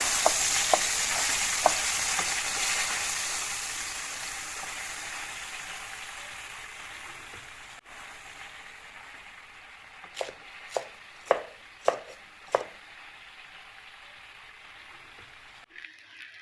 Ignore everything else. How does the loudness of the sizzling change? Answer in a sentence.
The volume of the sizzling goes down.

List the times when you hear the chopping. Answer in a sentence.
The chopping can be heard from 0.2 to 1.8 s and from 10.2 to 12.7 s.